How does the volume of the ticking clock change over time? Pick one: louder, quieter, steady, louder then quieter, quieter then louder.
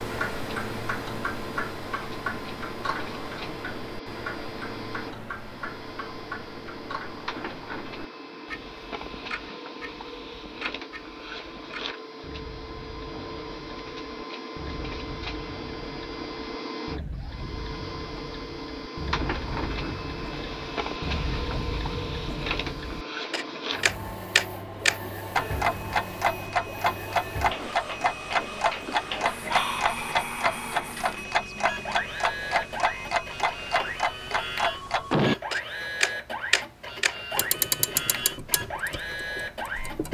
quieter then louder.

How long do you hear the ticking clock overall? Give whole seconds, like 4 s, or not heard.
40 s.